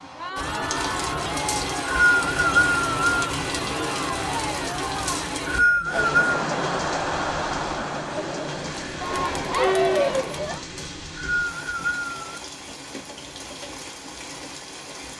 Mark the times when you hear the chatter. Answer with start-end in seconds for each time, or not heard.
0.0-10.7.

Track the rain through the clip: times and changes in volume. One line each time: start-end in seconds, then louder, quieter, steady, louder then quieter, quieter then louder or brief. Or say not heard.
0.0-15.1 quieter.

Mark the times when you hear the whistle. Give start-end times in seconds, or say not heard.
1.4-3.2, 5.0-6.4, 10.8-12.4.